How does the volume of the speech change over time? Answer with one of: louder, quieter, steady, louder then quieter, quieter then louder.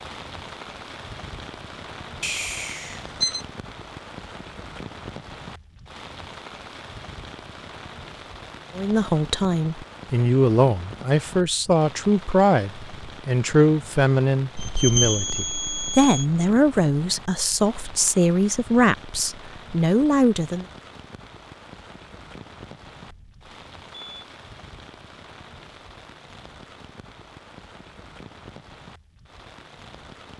steady.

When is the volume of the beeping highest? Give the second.
15 s.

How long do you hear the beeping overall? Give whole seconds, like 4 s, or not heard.
4 s.